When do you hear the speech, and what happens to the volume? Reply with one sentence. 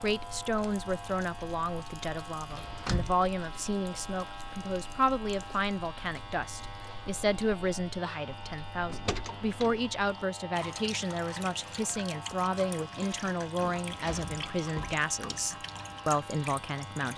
The speech can be heard from 0.0 to 17.1 s, at a steady volume.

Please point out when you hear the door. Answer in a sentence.
The door can be heard from 2.5 to 3.1 s, from 8.9 to 9.8 s and from 13.6 to 15.1 s.